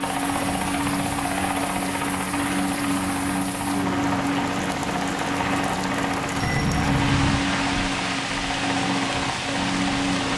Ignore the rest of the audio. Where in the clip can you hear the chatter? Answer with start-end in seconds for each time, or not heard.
not heard.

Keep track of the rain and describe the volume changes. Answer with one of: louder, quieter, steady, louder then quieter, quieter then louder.
louder.